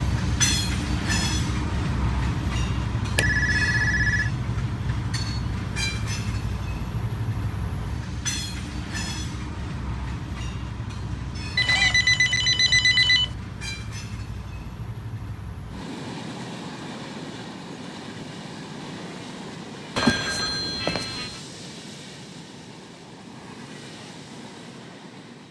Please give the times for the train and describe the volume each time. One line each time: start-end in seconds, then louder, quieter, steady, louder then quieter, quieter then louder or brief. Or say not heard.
0.0-25.4 quieter.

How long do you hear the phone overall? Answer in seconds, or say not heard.
4 s.